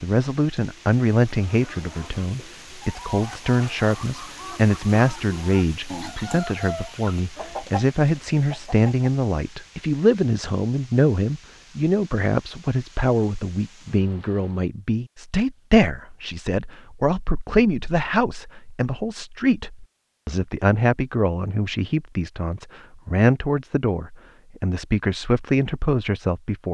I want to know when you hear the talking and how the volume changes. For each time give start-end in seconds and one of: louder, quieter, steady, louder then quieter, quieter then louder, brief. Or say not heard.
0.0-26.6 steady.